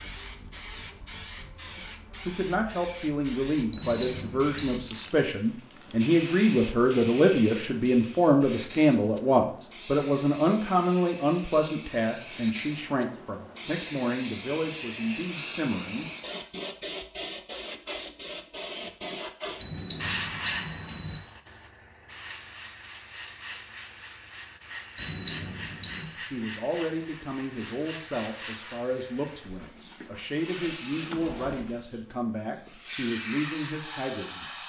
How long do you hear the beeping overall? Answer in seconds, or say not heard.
4 s.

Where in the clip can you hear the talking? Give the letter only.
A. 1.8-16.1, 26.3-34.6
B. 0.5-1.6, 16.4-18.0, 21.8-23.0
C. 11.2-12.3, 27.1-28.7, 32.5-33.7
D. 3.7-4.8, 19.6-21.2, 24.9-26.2
A.